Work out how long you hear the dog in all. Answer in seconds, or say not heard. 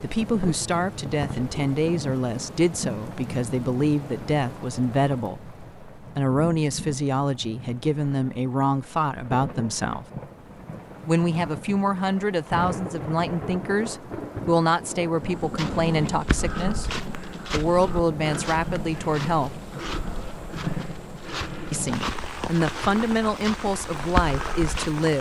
not heard.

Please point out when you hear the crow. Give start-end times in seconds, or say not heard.
not heard.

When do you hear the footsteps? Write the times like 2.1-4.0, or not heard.
15.2-25.1.